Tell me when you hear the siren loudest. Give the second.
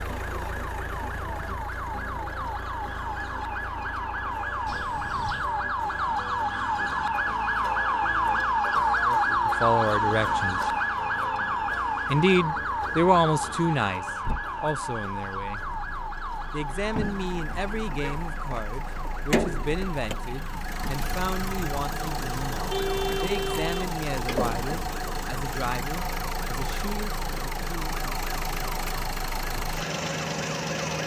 9 s.